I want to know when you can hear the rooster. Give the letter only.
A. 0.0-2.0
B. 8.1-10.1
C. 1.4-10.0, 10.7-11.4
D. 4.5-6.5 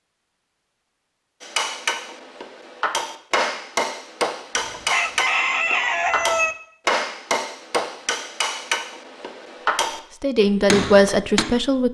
D.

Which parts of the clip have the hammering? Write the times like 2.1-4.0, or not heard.
1.4-10.0, 10.7-11.4.